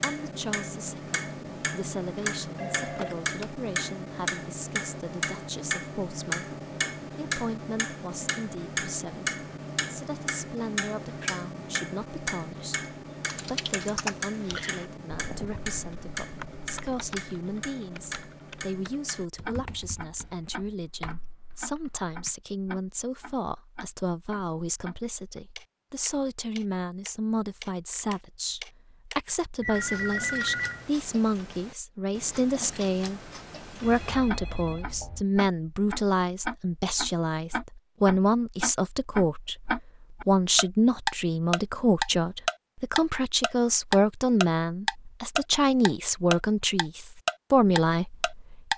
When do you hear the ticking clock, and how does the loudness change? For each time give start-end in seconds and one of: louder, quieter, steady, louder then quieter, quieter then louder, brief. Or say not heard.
0.0-48.7 quieter then louder.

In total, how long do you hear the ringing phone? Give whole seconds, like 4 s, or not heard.
4 s.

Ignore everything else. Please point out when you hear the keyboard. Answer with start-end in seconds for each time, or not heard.
13.2-22.3.